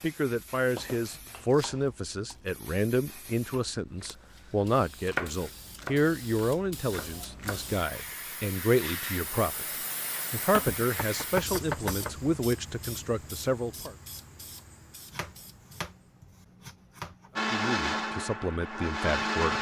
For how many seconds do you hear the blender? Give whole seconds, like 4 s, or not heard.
2 s.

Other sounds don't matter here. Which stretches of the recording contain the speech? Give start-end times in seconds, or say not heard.
0.0-9.7, 10.3-13.9, 17.5-19.5.